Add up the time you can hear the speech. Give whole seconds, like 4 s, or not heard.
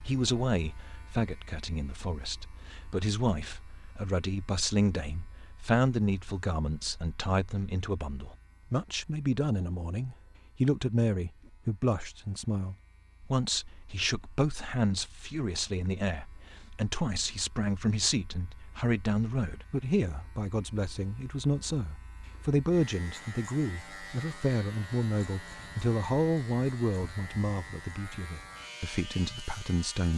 30 s.